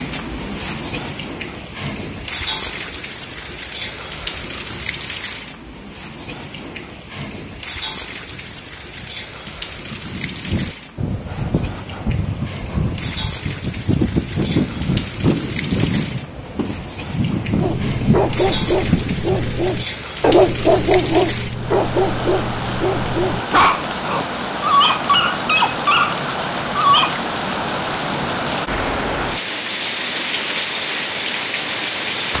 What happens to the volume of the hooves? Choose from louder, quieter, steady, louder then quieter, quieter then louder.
louder.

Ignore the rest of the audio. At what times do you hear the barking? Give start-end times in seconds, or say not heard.
17.6-27.1.